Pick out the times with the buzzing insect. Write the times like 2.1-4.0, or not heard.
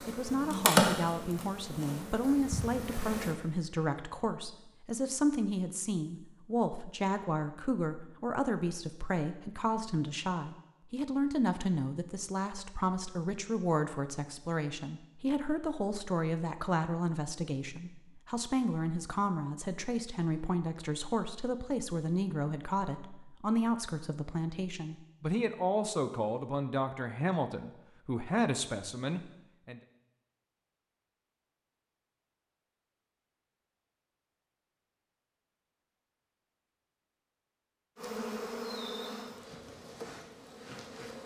0.0-3.4, 38.0-41.2.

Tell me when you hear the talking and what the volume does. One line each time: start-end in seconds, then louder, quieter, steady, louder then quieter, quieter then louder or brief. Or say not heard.
0.1-29.8 steady.